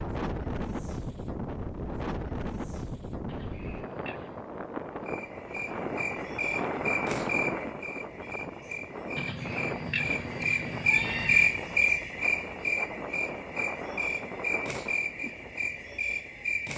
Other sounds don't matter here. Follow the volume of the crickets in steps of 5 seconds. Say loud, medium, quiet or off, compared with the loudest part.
off, medium, loud, medium.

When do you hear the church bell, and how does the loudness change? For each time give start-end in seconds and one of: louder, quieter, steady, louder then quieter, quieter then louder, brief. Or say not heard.
not heard.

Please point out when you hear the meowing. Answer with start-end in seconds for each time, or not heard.
3.2-4.5, 9.2-11.6.